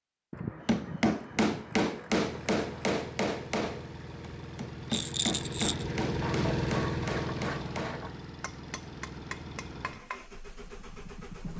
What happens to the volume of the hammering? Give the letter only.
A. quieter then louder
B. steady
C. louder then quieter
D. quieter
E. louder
D.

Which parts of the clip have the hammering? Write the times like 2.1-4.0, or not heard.
0.7-10.3.